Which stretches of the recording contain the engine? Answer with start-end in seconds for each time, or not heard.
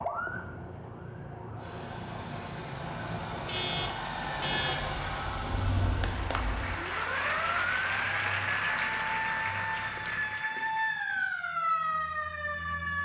1.6-10.3.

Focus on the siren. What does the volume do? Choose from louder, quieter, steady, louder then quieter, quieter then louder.
louder.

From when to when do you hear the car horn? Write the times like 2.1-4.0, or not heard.
3.3-5.0.